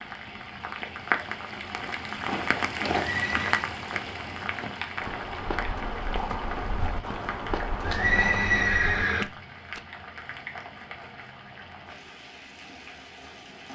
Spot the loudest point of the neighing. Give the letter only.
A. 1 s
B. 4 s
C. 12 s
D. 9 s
D.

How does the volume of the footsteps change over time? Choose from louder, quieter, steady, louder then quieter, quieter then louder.
quieter then louder.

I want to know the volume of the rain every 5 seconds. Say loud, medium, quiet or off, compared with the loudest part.
loud, medium, medium.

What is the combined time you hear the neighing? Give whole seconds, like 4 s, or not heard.
2 s.